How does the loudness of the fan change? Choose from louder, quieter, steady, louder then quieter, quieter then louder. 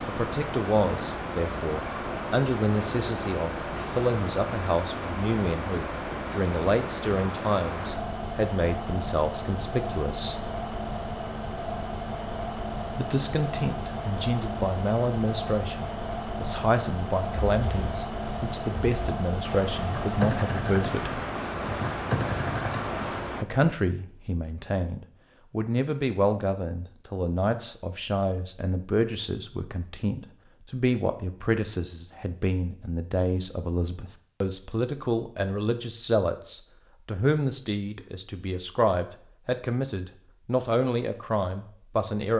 steady.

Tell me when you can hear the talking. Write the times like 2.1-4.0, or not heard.
0.1-10.4, 12.9-21.2, 23.4-42.3.